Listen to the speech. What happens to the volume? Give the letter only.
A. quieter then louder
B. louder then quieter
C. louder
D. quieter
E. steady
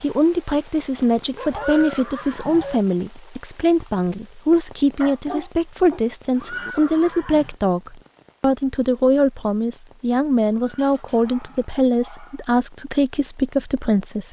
E.